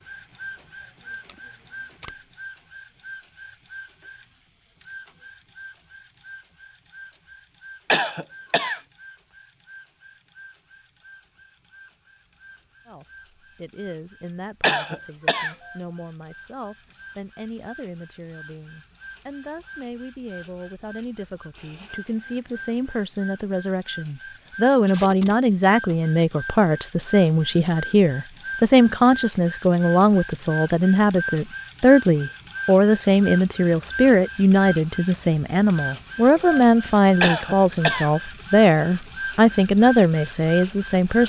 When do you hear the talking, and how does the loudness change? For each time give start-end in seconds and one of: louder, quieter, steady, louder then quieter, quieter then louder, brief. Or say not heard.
12.8-41.2 louder.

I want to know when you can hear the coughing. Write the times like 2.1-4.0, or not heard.
7.9-8.8, 14.6-15.6, 37.2-38.1.